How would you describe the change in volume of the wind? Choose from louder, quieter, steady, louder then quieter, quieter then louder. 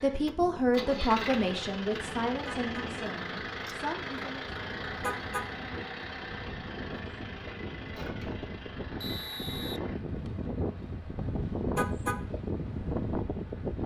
louder.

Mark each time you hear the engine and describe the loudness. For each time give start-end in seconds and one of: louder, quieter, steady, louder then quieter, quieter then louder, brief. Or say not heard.
0.0-13.8 quieter.